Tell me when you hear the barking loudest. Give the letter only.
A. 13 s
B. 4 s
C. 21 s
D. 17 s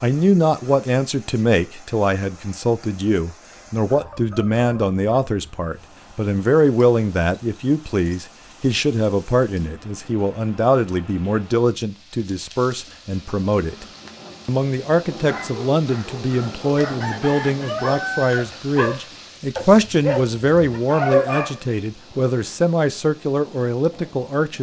C.